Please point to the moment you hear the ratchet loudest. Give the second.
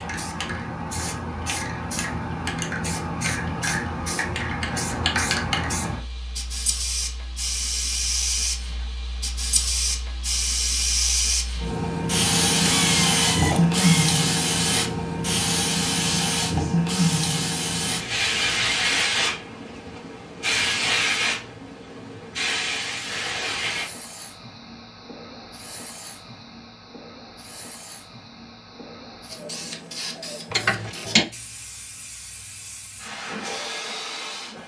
31 s.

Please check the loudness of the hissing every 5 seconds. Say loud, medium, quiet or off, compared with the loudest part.
medium, medium, loud, loud, medium, quiet, quiet.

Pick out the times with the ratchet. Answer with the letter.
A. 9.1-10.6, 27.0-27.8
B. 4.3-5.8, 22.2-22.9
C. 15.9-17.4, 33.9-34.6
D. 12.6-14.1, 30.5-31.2
D.